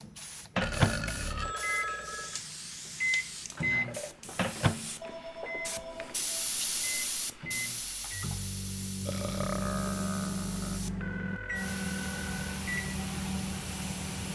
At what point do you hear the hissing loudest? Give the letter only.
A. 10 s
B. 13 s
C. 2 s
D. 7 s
D.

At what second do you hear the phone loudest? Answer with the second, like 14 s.
2 s.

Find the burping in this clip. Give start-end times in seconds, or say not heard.
0.6-1.6, 9.1-10.8.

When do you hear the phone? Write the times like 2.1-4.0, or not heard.
1.4-2.4, 5.0-6.7, 11.0-12.7.